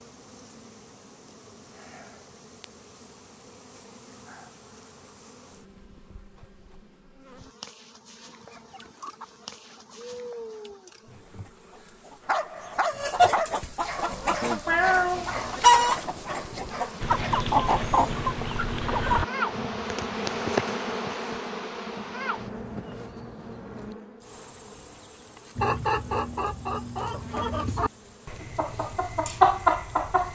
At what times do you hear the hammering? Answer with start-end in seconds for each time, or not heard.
not heard.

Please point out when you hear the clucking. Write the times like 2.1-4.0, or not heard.
8.2-19.2, 25.6-30.3.